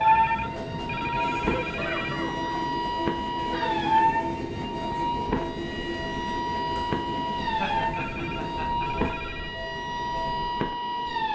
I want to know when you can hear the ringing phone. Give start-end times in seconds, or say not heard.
0.0-2.1, 7.9-9.6.